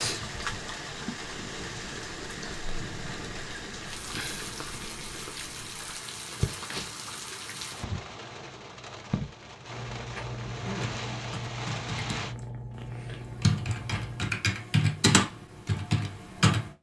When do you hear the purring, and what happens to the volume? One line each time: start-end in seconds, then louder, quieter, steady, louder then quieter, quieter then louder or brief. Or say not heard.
0.0-14.3 louder.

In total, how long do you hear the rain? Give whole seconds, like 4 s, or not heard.
12 s.